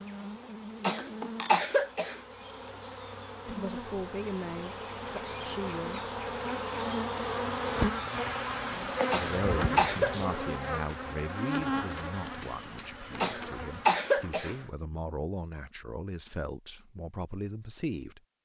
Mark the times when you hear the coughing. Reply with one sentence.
You can hear the coughing from 0.8 to 2.2 s, from 9.1 to 10.2 s and from 13.2 to 14.6 s.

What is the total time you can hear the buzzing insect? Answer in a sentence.
The buzzing insect can be heard for 15 seconds in total.